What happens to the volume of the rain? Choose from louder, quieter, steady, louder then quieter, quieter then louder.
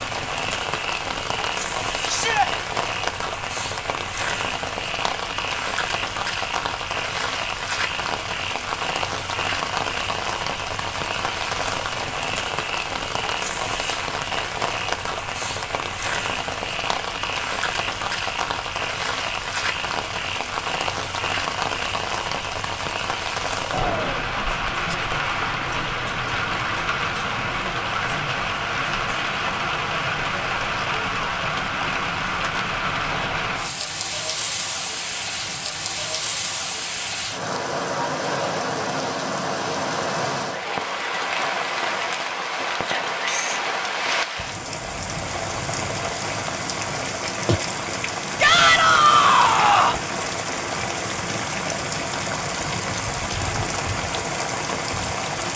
steady.